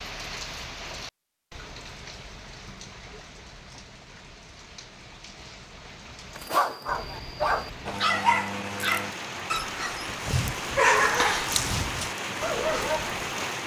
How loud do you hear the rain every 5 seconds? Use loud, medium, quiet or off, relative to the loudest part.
medium, medium, loud.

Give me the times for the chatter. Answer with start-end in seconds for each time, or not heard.
not heard.